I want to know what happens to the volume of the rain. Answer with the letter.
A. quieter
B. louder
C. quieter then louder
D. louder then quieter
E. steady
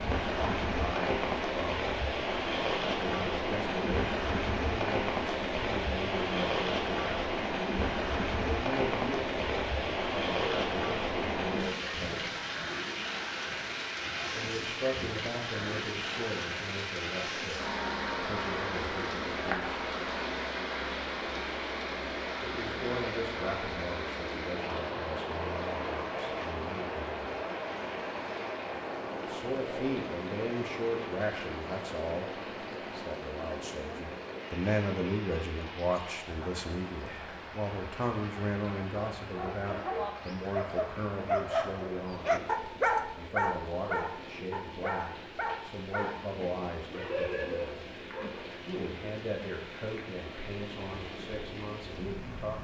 A.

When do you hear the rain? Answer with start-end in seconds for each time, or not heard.
0.0-52.5.